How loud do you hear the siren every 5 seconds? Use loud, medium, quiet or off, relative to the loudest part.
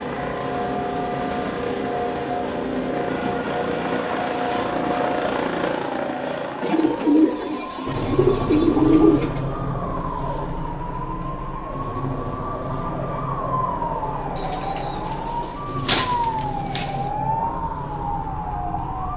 medium, medium, loud, loud.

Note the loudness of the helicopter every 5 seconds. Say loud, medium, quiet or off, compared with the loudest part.
loud, loud, medium, medium.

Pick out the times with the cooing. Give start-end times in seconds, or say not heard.
1.2-2.8, 6.6-9.4, 14.3-17.1.